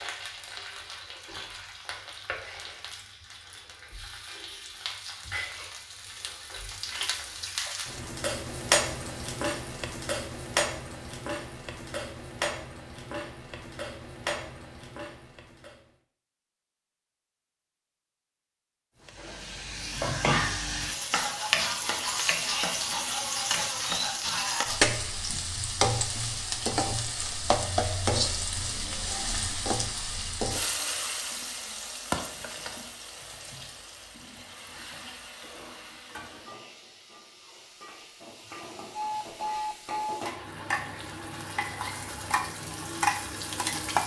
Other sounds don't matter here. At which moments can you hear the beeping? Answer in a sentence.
The beeping can be heard from 38.9 to 40.2 s.